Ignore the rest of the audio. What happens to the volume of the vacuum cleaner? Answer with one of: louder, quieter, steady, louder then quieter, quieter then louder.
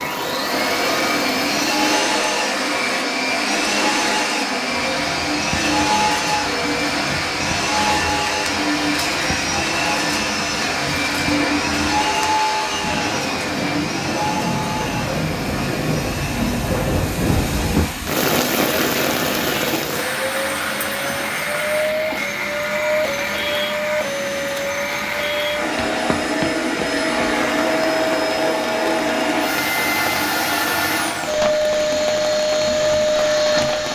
quieter then louder.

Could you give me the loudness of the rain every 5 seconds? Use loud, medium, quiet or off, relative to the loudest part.
medium, medium, medium, loud, medium, medium, medium.